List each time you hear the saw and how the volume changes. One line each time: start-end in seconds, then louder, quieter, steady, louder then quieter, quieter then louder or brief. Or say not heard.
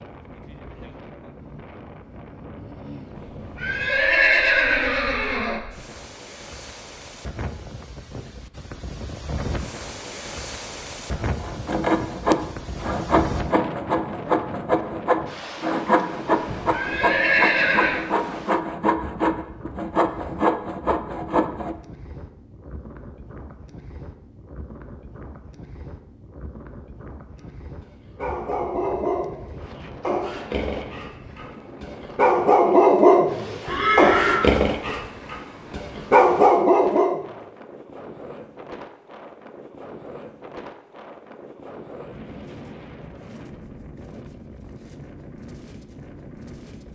11.1-21.8 steady.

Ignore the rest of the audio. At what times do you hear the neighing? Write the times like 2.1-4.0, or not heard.
3.5-5.6, 16.7-18.1, 33.6-34.4.